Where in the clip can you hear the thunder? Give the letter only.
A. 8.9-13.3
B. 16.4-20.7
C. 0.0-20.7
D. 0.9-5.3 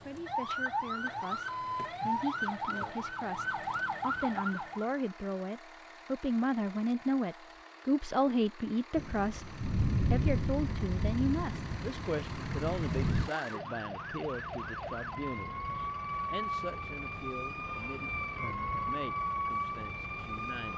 A.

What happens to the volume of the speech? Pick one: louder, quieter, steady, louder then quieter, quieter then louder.
louder then quieter.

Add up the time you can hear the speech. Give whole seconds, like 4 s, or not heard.
21 s.